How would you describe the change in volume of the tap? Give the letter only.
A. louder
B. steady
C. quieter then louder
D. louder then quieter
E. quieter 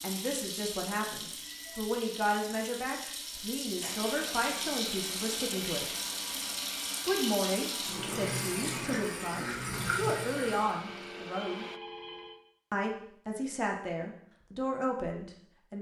A.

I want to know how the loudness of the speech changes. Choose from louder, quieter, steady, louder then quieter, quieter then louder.
steady.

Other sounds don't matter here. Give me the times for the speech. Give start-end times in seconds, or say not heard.
0.0-5.8, 7.0-11.7, 12.7-15.7.